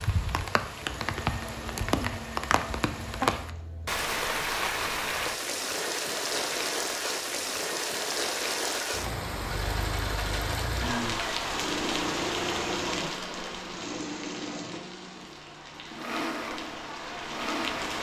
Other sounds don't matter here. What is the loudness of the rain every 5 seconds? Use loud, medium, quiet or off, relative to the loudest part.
loud, loud, loud, medium.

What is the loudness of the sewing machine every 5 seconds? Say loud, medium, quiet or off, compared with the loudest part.
medium, loud, loud, loud.